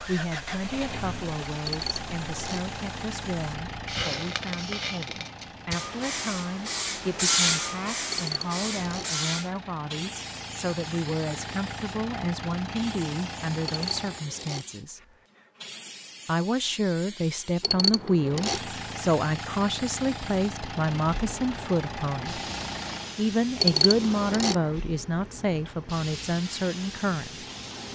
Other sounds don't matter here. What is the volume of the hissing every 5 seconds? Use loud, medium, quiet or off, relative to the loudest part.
medium, loud, quiet, quiet, medium, medium.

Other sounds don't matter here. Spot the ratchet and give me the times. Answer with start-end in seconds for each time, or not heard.
1.6-2.6, 8.1-9.1, 13.7-14.7, 17.6-18.6, 23.6-24.6.